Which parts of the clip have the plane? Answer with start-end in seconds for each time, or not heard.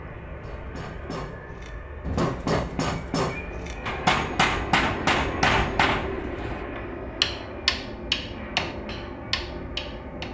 0.0-10.2.